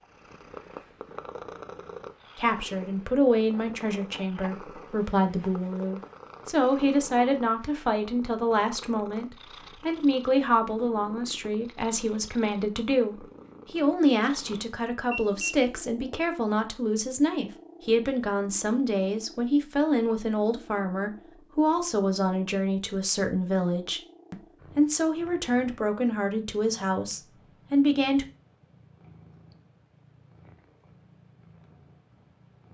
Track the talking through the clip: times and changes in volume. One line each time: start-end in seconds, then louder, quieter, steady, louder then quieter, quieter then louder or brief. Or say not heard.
2.4-28.2 steady.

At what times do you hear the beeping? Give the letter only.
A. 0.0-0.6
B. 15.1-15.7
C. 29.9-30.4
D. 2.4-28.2
B.